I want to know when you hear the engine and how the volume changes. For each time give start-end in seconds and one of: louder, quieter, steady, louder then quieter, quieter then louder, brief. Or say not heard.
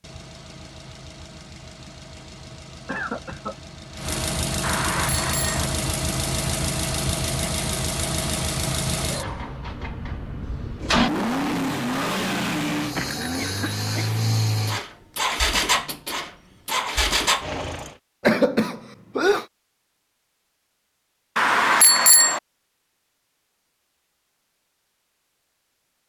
0.0-17.9 louder.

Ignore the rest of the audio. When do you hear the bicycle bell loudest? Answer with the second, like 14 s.
22 s.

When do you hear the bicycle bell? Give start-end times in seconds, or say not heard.
4.6-5.7, 12.9-14.1, 21.4-22.4.